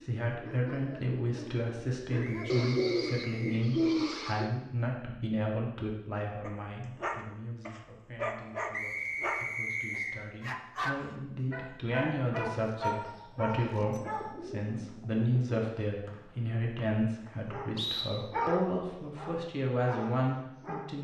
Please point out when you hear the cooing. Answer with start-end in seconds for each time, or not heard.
2.5-4.5, 13.9-15.7.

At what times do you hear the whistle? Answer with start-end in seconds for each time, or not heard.
2.2-3.6, 8.7-10.2, 16.1-18.1.